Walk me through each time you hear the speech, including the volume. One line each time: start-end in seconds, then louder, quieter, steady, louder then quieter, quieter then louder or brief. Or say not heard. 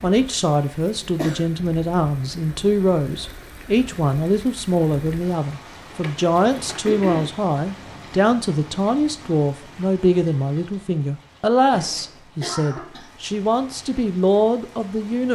0.0-15.3 steady.